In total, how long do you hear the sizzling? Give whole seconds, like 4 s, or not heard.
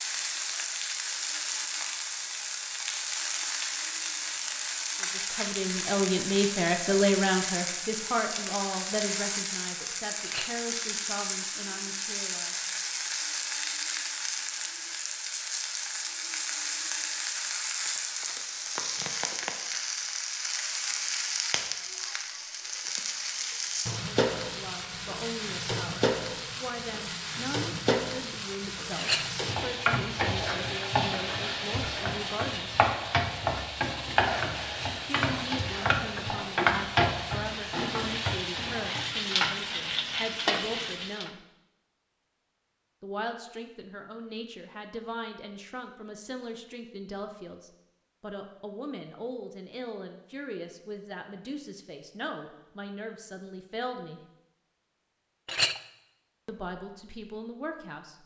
41 s.